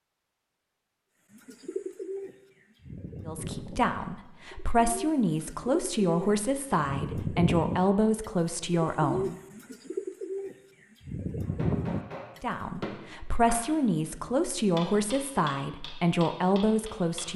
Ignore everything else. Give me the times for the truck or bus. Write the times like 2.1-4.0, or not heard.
not heard.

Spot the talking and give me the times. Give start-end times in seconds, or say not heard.
3.2-9.3, 12.4-17.3.